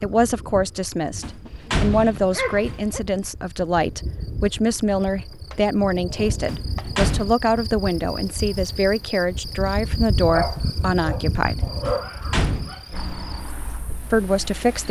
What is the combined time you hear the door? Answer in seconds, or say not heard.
4 s.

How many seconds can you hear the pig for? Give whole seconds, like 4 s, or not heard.
not heard.